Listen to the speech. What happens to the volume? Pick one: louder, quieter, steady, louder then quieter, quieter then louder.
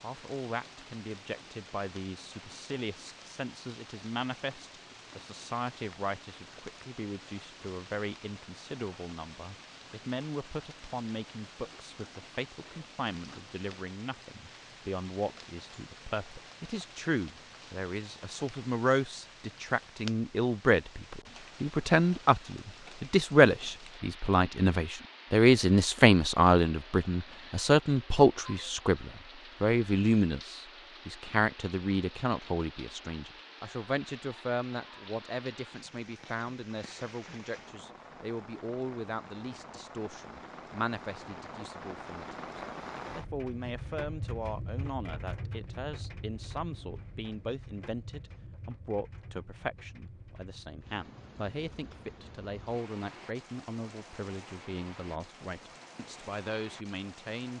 louder then quieter.